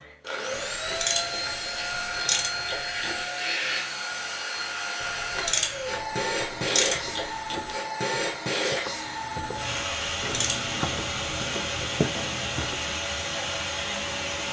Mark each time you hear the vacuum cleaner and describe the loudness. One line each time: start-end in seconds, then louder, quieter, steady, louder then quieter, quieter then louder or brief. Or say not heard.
0.0-14.4 steady.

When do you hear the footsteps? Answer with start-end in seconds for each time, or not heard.
6.3-12.9.